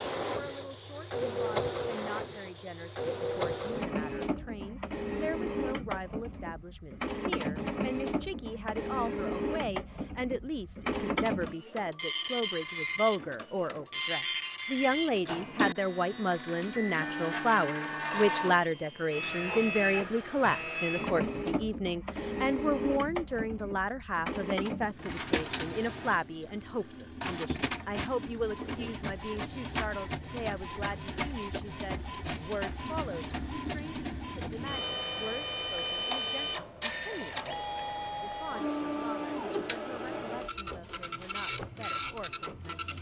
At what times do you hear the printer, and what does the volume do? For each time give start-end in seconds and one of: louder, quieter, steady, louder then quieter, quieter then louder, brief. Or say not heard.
0.0-42.9 steady.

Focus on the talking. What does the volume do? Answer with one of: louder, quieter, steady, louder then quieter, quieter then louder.
louder then quieter.